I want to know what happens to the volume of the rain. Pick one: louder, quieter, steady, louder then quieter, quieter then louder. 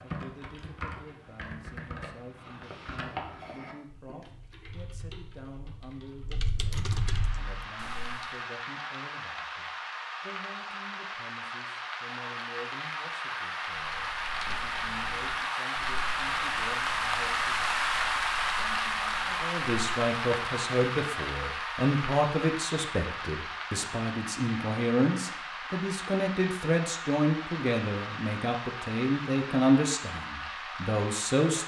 louder then quieter.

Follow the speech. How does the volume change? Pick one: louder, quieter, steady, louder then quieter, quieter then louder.
louder.